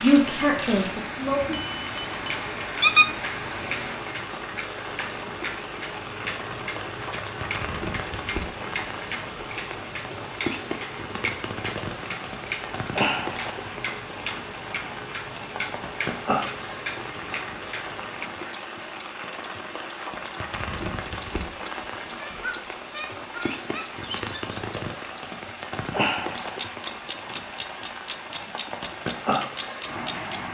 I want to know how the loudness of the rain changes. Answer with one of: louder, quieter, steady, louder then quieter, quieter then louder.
steady.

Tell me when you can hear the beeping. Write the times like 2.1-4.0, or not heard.
1.5-2.4.